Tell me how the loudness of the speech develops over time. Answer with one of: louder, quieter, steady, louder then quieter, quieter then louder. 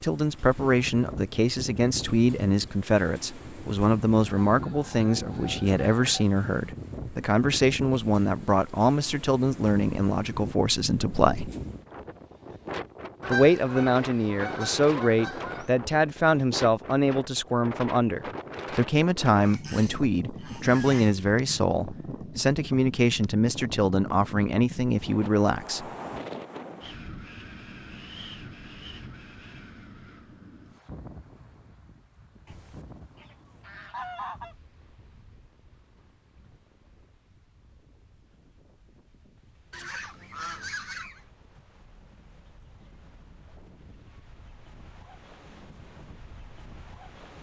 steady.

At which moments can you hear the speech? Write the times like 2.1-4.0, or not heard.
0.0-11.5, 13.2-25.9.